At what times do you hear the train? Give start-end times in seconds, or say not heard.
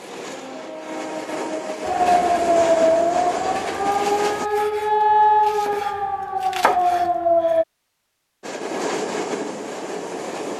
0.0-4.5, 8.4-10.5.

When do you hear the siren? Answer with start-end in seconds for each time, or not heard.
1.9-7.7.